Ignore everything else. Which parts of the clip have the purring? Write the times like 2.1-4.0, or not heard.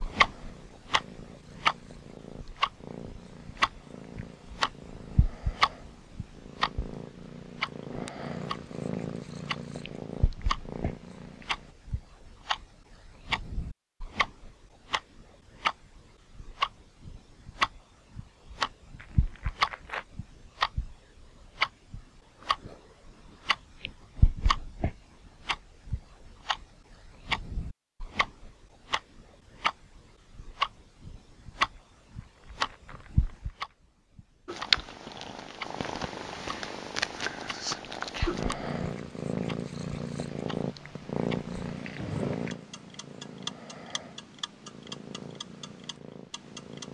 0.0-11.8, 34.5-46.8.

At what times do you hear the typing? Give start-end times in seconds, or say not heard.
not heard.